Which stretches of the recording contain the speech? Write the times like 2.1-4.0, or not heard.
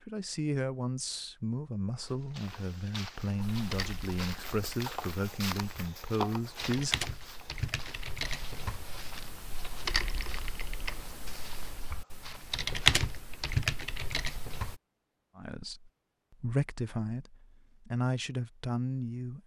0.1-7.0, 15.3-19.4.